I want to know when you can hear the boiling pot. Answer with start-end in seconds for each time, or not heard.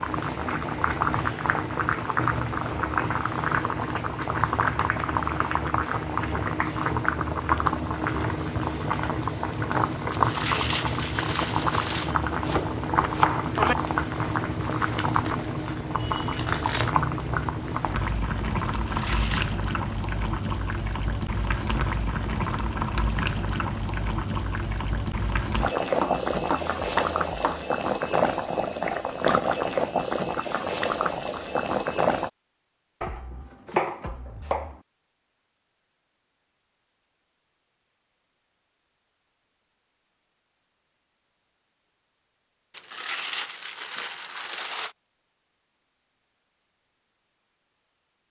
0.0-32.3.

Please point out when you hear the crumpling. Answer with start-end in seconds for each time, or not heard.
10.1-12.2, 18.7-19.6, 42.7-45.0.